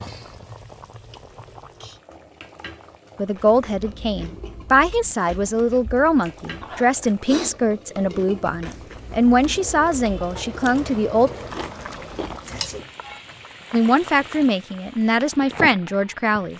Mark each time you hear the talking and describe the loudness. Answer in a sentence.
The talking can be heard from 3.1 to 11.3 s, at a steady volume; and briefly from 13.7 to 16.5 s.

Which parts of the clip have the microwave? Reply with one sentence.
You can't hear the microwave here.